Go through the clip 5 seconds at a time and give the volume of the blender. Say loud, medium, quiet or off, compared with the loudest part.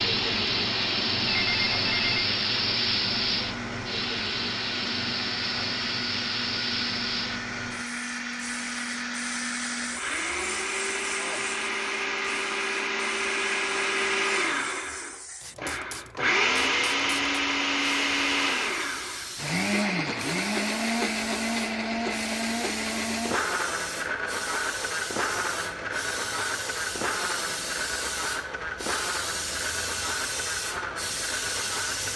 quiet, medium, loud, loud, loud, medium, medium.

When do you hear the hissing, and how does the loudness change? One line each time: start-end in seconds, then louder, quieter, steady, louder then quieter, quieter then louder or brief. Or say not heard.
0.0-32.1 quieter then louder.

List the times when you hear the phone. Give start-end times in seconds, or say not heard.
1.2-2.2.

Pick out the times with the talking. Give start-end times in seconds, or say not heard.
not heard.